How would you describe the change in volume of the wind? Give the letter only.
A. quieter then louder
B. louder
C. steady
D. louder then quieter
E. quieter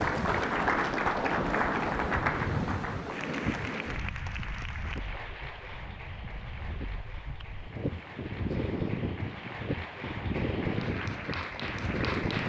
A.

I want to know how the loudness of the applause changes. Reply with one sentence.
The loudness of the applause goes down, then up.